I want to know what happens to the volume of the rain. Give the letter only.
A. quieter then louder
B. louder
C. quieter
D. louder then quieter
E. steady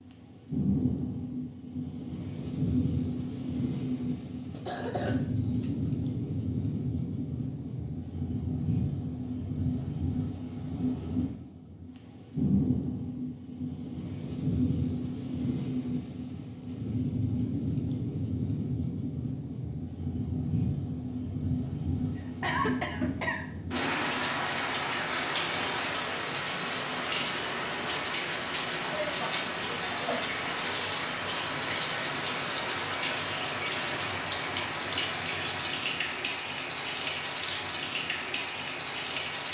E.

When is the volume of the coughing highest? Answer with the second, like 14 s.
23 s.